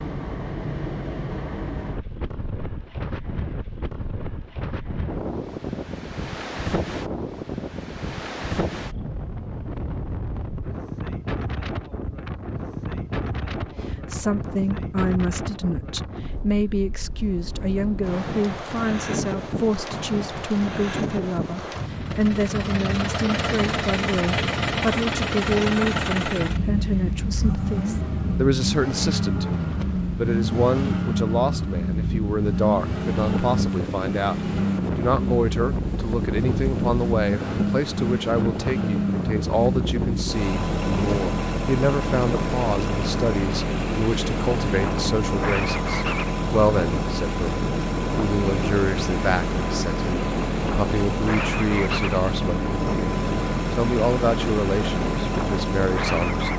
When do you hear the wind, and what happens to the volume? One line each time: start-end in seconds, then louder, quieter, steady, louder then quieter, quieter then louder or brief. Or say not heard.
0.0-56.5 steady.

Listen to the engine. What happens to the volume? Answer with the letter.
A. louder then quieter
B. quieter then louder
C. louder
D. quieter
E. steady
E.